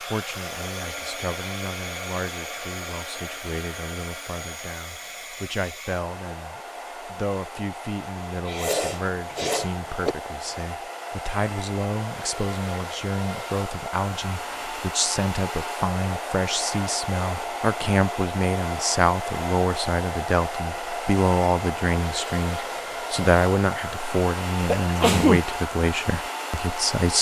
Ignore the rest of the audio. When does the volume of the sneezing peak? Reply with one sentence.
The loudest moment of the sneezing is at 25 seconds.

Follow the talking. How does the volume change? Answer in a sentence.
The volume of the talking goes up.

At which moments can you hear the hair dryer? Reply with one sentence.
The hair dryer can be heard from 0.0 to 27.1 s.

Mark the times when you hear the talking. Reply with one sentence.
The talking can be heard from 0.0 to 27.1 s.